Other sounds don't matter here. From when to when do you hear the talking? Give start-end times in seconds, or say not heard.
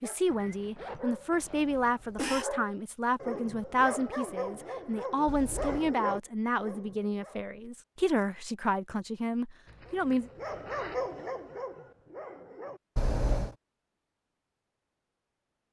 0.0-10.3.